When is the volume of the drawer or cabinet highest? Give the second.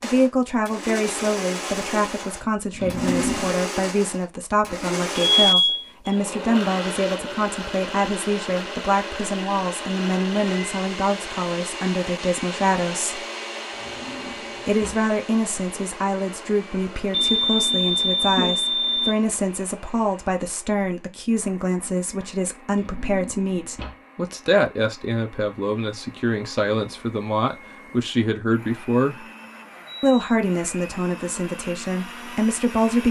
3 s.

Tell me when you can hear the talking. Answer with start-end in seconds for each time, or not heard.
0.0-13.2, 14.7-29.2, 30.0-33.0.